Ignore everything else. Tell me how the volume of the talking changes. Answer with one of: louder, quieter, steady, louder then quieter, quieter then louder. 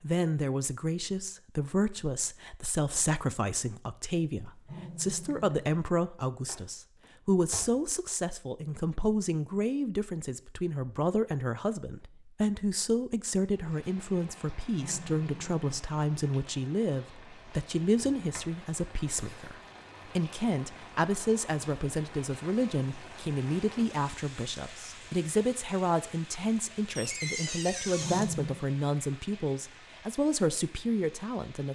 steady.